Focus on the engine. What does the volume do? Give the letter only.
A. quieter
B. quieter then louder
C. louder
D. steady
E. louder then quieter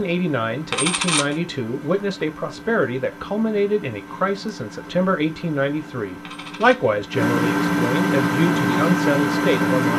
C.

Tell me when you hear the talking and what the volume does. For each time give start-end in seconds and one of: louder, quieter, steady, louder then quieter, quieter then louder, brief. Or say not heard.
0.0-9.9 steady.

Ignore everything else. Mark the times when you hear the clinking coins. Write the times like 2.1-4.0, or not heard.
0.7-1.4, 6.2-6.8.